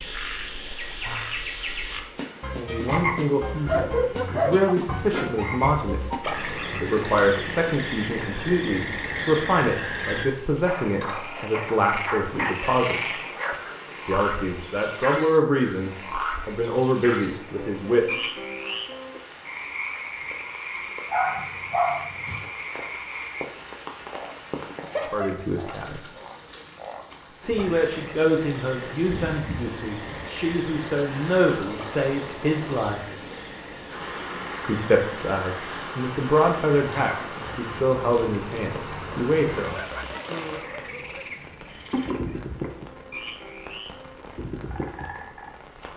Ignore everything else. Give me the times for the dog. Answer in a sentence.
The dog can be heard from 3.5 to 5.5 s, from 21.1 to 22.5 s and from 39.8 to 41.3 s.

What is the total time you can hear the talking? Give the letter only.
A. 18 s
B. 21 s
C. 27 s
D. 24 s
C.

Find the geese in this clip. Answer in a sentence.
You can't hear the geese here.